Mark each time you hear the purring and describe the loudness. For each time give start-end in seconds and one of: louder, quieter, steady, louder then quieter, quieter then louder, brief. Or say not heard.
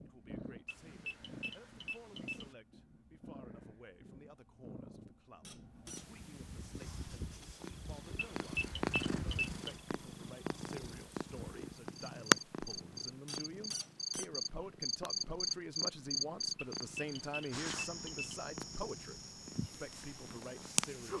0.0-21.1 louder then quieter.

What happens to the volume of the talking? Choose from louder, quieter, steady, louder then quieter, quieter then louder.
louder.